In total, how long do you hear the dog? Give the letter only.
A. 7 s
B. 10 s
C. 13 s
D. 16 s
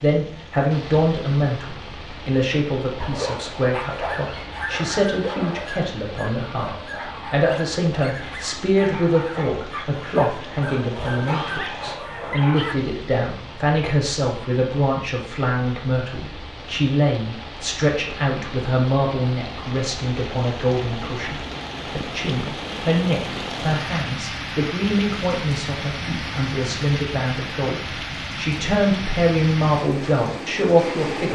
B.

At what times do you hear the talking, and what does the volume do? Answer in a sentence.
The talking can be heard from 0.0 to 31.3 s, at a steady volume.